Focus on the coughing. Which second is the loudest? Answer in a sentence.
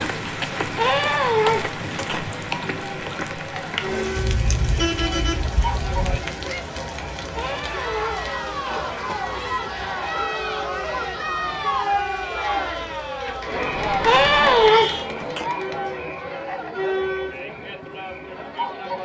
The loudest moment of the coughing is at 15 seconds.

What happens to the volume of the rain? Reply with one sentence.
The volume of the rain goes down.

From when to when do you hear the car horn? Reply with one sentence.
You can hear the car horn from 4.2 to 6.2 s and from 13.8 to 15.1 s.